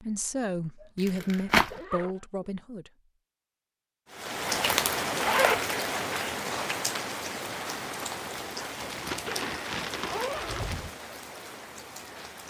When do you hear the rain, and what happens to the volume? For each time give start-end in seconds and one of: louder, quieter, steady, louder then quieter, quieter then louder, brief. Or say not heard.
4.1-12.4 quieter.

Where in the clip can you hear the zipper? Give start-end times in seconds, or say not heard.
0.8-2.2, 5.2-6.3, 9.2-10.7.